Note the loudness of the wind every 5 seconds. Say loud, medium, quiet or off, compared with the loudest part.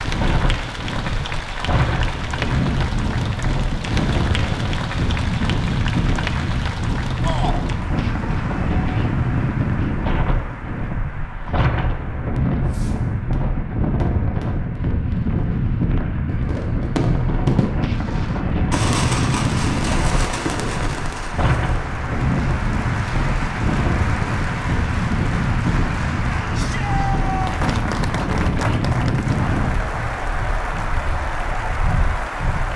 loud, loud, loud, loud, loud, loud, medium.